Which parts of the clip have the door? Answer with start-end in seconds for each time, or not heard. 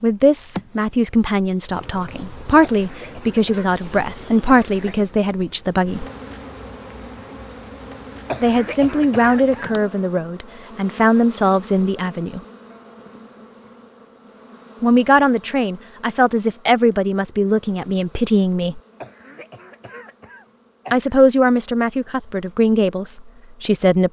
not heard.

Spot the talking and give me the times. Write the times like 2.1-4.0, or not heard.
0.0-6.0, 8.4-12.4, 14.8-18.8, 20.9-24.0.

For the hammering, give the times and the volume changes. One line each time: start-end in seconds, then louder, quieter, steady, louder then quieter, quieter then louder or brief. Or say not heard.
not heard.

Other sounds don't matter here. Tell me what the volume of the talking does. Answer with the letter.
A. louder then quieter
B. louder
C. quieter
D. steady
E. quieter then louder
D.